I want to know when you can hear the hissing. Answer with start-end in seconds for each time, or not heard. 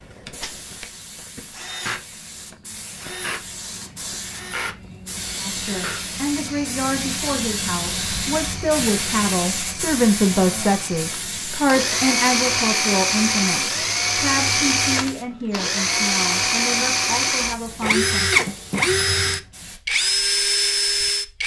0.0-19.8.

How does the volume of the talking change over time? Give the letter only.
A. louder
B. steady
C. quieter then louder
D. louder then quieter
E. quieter
D.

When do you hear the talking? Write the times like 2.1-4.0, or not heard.
5.3-18.3.